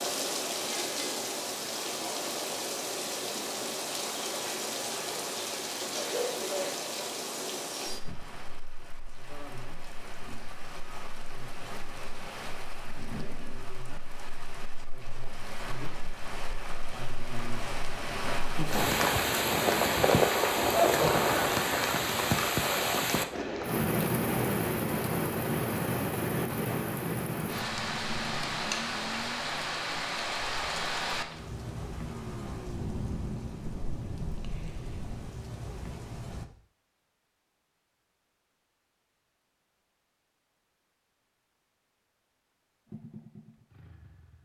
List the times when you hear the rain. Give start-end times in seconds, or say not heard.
0.0-36.5.